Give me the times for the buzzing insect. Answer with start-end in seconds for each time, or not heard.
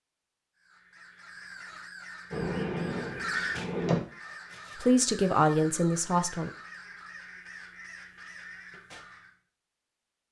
2.3-4.0.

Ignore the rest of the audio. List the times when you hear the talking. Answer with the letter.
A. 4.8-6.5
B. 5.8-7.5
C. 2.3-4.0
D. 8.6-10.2
A.